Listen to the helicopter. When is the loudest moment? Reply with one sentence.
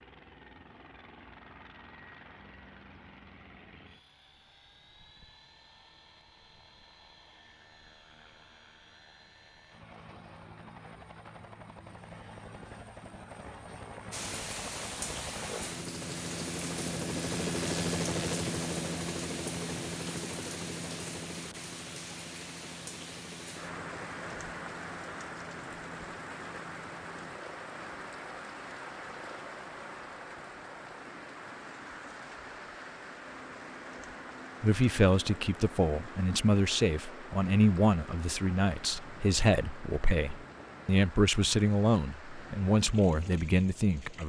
The loudest moment of the helicopter is at 18 seconds.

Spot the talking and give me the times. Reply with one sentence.
The talking can be heard from 34.6 to 44.2 s.